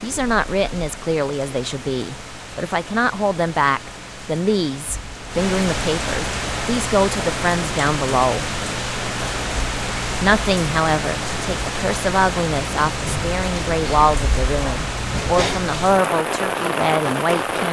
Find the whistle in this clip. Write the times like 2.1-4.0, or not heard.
not heard.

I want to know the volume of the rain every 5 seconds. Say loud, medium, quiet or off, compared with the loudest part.
quiet, loud, loud, loud.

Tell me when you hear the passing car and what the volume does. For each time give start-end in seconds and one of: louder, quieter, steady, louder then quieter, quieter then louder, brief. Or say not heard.
not heard.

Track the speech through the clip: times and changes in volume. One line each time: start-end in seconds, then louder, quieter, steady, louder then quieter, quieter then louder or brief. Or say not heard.
0.0-8.4 steady
10.2-17.6 steady.